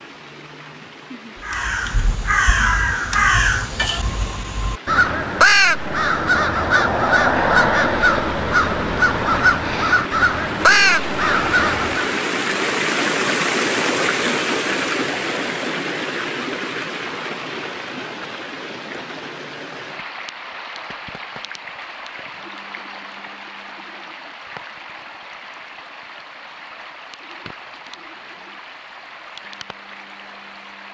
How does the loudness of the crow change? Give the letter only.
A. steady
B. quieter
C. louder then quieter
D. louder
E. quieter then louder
A.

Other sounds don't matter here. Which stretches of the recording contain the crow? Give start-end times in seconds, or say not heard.
1.4-12.2.